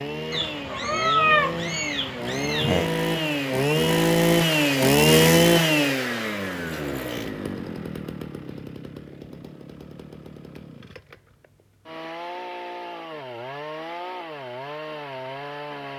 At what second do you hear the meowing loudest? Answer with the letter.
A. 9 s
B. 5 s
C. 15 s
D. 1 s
D.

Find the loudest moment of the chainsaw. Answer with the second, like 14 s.
5 s.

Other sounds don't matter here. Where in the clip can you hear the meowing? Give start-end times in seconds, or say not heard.
0.3-2.9.